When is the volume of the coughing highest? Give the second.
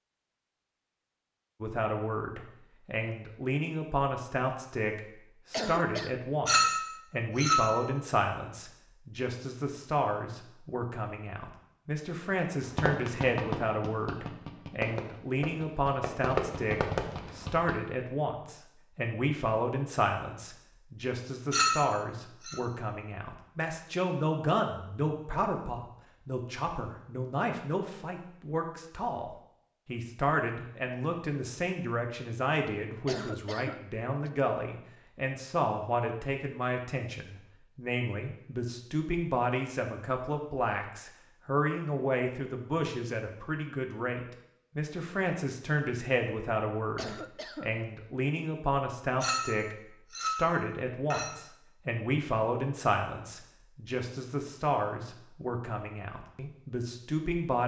6 s.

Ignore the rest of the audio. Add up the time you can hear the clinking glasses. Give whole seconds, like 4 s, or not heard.
5 s.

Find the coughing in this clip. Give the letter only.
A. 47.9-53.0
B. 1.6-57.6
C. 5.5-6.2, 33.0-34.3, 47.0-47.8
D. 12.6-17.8
C.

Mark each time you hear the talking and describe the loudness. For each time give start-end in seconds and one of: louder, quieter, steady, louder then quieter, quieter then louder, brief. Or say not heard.
1.6-57.6 steady.